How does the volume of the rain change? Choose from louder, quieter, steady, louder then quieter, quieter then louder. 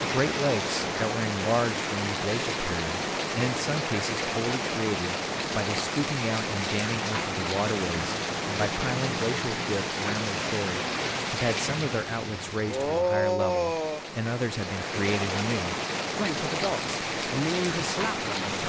steady.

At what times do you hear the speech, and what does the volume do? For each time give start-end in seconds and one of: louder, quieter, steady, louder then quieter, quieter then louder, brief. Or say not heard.
0.0-18.6 steady.